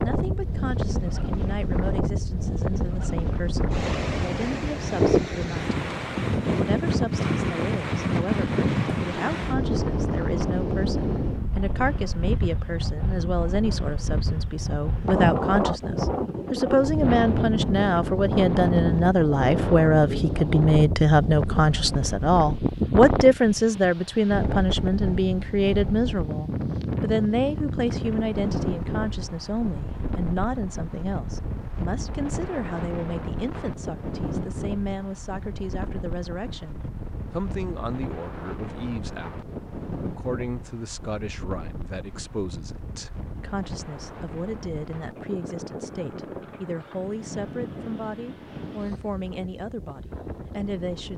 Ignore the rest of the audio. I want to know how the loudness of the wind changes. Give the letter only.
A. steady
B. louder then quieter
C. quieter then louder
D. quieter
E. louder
D.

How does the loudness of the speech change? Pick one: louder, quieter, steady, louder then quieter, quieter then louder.
louder then quieter.